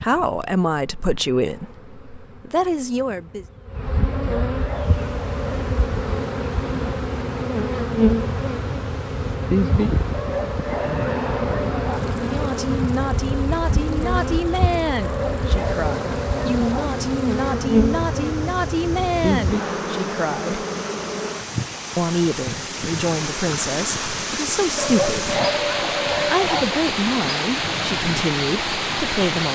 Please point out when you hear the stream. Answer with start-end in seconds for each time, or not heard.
4.6-29.5.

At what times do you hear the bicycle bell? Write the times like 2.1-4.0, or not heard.
not heard.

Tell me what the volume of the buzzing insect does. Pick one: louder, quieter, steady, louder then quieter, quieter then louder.
louder then quieter.